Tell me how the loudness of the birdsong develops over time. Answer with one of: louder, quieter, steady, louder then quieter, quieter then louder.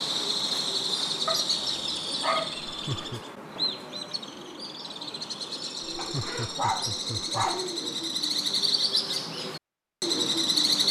quieter then louder.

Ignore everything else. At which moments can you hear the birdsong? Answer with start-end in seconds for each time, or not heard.
0.0-10.8.